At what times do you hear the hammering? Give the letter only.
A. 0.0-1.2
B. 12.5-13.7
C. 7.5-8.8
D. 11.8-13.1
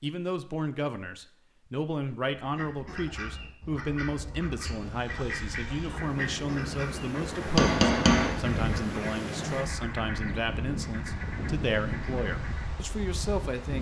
C.